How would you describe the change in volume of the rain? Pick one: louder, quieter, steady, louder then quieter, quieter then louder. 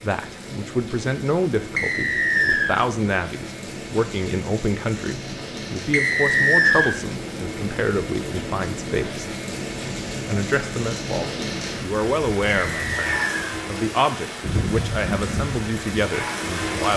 louder.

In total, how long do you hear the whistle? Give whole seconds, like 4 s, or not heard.
3 s.